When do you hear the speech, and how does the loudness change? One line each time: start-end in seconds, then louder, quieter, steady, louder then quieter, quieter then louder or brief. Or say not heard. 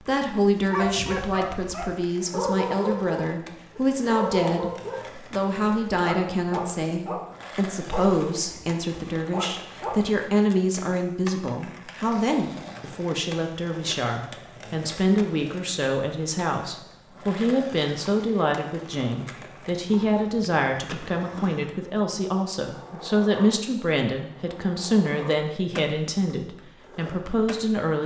0.0-28.0 steady.